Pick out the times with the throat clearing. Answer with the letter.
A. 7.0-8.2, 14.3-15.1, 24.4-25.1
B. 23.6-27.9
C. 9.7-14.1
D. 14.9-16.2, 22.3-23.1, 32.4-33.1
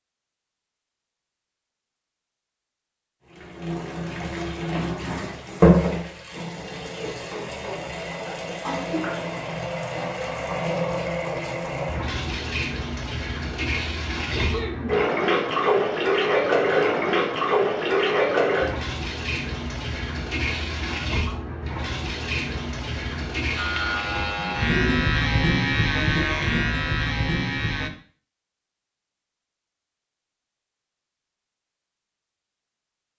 A.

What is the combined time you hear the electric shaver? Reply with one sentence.
You can hear the electric shaver for 4 seconds altogether.